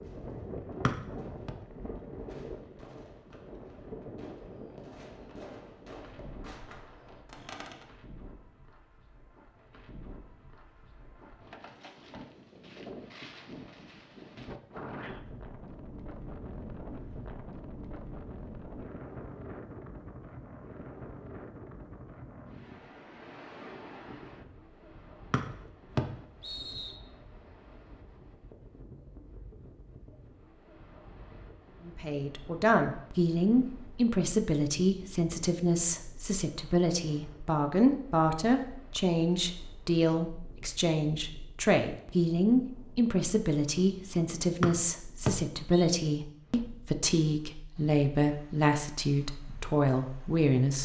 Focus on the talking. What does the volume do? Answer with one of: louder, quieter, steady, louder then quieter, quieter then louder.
steady.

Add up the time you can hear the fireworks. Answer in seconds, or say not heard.
8 s.